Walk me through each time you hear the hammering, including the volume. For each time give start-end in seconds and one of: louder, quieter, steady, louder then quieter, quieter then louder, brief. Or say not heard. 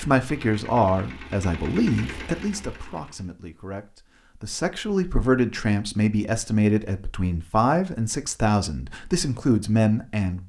not heard.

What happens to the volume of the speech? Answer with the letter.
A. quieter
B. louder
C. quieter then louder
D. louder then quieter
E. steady
C.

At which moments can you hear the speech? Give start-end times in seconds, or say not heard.
0.0-10.4.